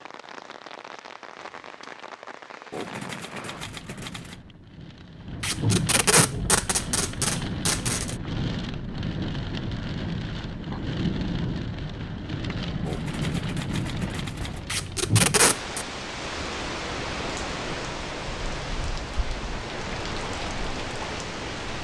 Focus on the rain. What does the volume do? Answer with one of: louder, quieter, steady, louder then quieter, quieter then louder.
louder.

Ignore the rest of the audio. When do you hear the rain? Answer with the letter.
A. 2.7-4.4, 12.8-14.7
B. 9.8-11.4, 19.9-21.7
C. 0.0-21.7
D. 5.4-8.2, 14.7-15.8
C.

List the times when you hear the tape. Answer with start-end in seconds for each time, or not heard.
5.4-8.2, 14.7-15.8.